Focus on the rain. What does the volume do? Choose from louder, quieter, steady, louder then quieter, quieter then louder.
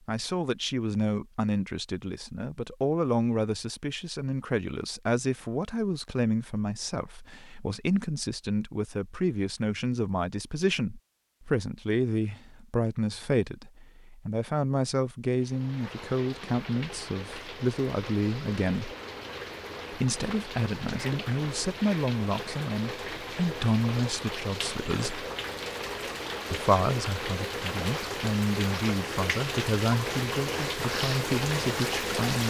louder.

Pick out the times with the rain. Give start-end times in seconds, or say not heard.
15.3-32.4.